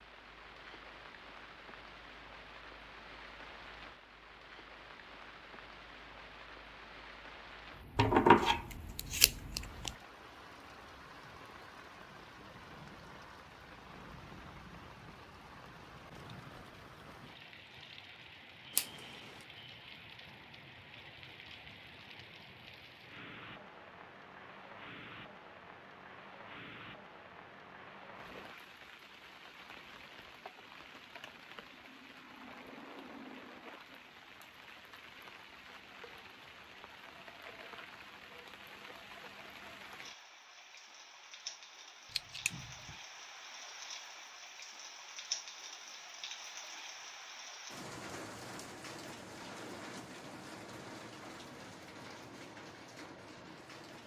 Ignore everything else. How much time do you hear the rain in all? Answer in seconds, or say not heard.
54 s.